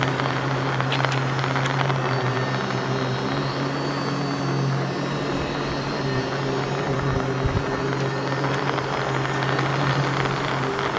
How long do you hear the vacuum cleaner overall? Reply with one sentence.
You can hear the vacuum cleaner for 11 seconds altogether.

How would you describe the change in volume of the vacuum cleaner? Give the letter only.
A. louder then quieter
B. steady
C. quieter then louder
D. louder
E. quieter
B.